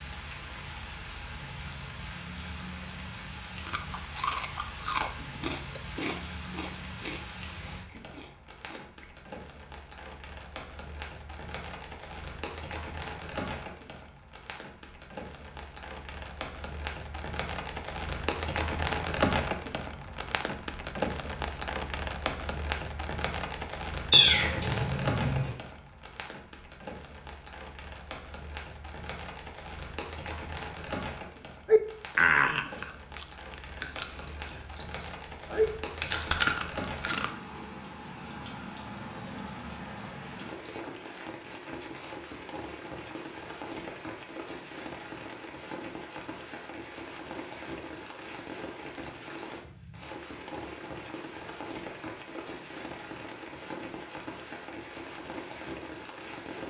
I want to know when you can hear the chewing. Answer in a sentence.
You can hear the chewing from 3.6 to 9.1 s and from 31.6 to 37.3 s.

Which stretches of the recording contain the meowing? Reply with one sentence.
You can hear the meowing from 24.1 to 25.5 s.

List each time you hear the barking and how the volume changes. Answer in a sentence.
The barking can't be heard in this clip.